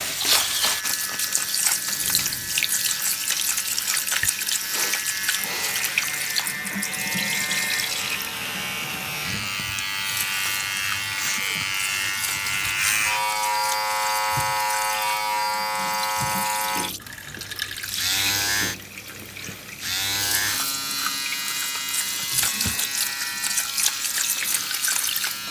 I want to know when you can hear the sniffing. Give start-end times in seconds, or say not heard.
4.2-5.8, 22.3-23.1.